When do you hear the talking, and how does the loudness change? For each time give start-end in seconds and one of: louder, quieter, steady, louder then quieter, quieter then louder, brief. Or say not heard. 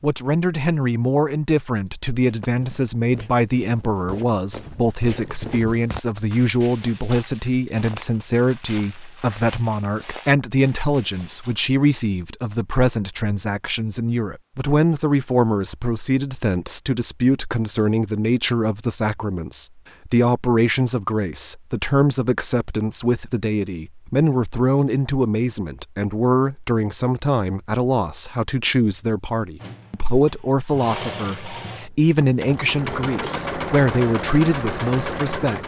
0.0-35.6 steady.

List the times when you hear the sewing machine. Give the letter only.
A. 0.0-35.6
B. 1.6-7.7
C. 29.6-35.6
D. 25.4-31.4
C.